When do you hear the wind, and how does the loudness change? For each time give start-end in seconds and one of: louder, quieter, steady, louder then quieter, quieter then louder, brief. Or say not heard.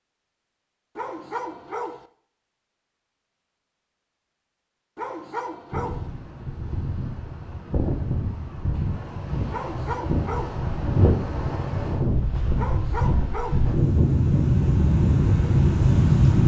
5.7-16.4 louder.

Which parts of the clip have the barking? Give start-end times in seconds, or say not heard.
0.9-2.0, 5.0-6.1, 9.5-10.7, 12.6-13.7.